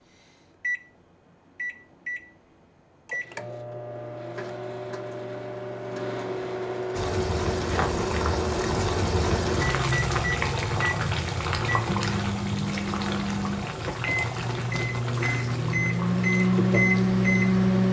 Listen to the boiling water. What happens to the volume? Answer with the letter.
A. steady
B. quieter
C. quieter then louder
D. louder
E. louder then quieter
B.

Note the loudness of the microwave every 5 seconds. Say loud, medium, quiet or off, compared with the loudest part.
quiet, medium, medium, loud.